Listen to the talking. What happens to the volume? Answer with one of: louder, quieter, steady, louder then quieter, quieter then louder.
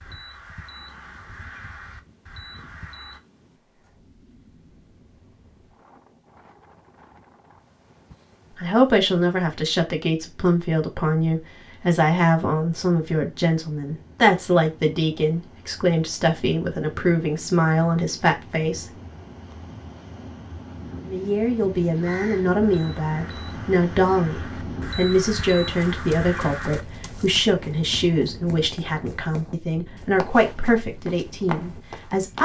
steady.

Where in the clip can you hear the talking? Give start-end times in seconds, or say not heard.
8.6-18.9, 21.1-32.4.